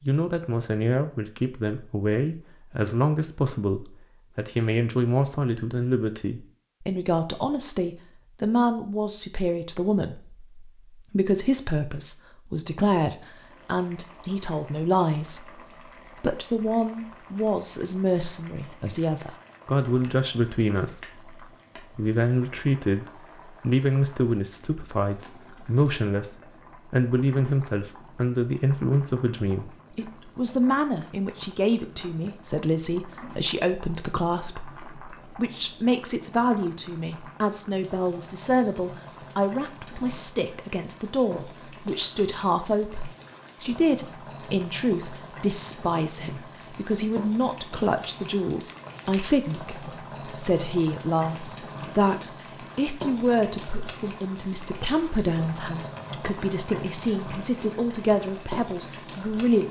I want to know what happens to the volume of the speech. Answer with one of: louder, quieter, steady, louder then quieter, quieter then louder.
steady.